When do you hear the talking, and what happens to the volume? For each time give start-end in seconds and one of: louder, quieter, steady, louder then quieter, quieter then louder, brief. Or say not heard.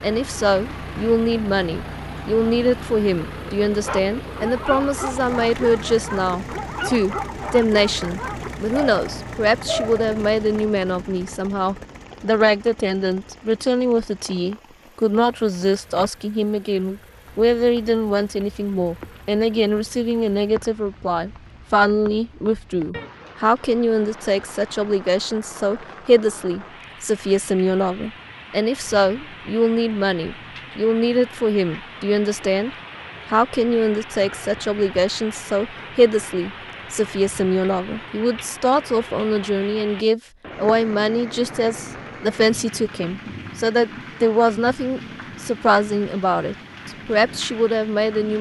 0.0-48.3 steady.